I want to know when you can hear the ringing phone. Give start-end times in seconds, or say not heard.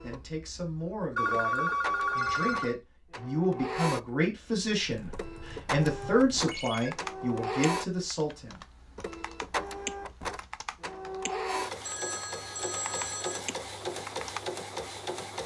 1.1-2.8, 6.5-6.9, 11.8-13.6.